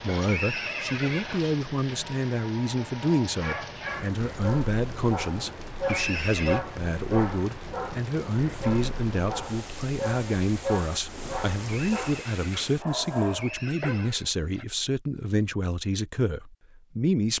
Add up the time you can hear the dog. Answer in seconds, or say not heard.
11 s.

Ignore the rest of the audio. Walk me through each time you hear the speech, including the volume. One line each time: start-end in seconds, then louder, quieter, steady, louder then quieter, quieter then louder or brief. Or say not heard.
0.0-17.3 steady.